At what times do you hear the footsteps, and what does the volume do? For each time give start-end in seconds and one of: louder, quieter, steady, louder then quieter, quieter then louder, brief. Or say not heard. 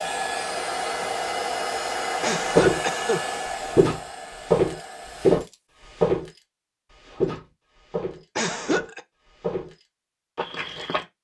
2.5-3.0 brief
3.6-11.1 quieter.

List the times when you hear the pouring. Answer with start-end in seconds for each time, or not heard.
not heard.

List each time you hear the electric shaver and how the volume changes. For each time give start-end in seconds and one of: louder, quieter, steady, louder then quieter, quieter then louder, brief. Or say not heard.
not heard.